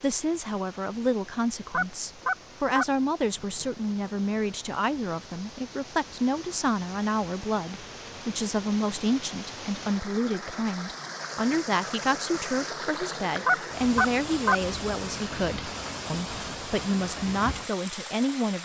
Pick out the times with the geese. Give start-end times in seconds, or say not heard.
1.7-3.7, 13.4-15.2.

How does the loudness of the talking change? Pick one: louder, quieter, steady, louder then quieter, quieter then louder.
steady.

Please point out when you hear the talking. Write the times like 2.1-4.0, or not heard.
0.0-18.6.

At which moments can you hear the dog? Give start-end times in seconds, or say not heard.
not heard.